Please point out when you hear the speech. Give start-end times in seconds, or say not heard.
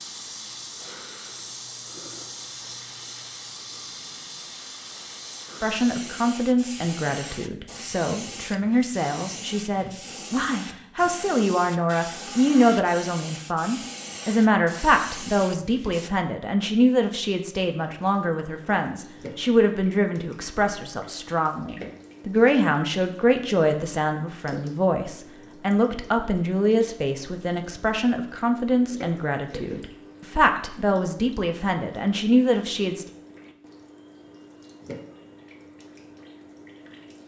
5.6-33.0.